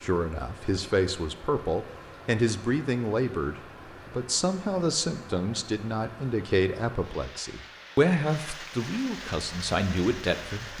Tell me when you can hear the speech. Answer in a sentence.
The speech can be heard from 0.0 to 10.7 s.